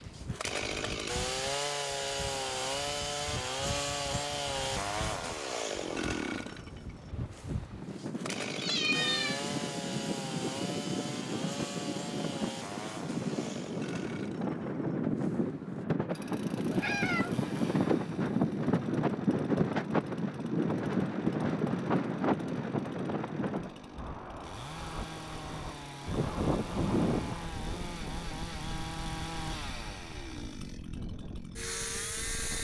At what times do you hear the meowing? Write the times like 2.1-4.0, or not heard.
8.6-9.4, 16.7-17.4.